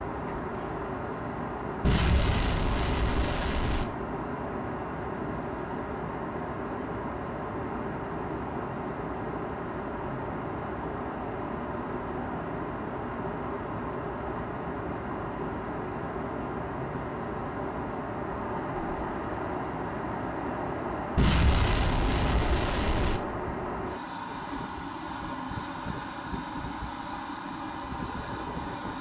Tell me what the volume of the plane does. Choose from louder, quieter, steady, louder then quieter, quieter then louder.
steady.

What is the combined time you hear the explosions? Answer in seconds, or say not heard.
4 s.